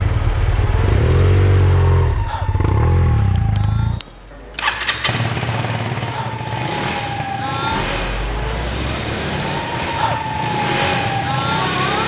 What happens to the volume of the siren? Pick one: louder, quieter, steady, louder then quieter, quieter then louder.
quieter then louder.